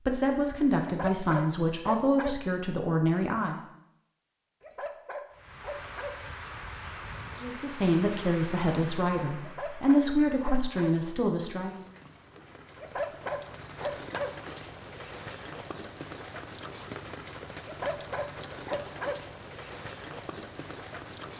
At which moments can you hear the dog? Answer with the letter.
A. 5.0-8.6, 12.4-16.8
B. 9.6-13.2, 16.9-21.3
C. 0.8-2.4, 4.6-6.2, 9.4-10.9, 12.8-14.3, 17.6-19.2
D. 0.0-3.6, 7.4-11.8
C.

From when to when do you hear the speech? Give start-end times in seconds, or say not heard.
0.0-3.6, 7.4-11.8.